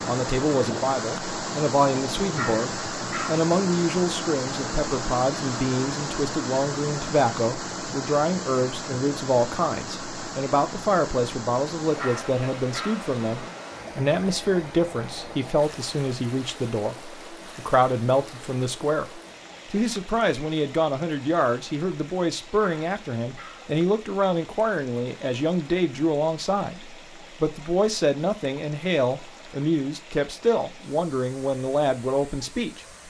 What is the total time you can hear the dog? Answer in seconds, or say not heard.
3 s.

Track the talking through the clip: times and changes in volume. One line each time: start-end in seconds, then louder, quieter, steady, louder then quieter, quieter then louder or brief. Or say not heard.
0.1-33.0 steady.